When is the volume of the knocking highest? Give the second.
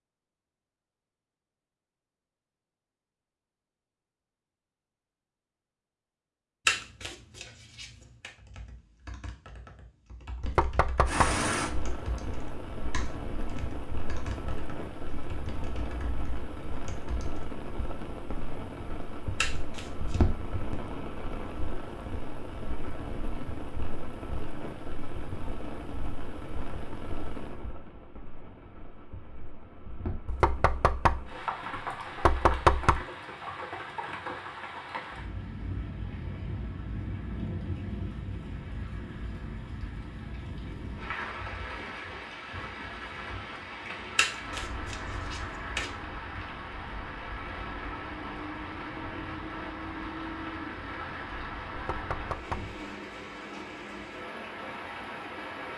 33 s.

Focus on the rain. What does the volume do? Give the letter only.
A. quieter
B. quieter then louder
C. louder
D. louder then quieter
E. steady
E.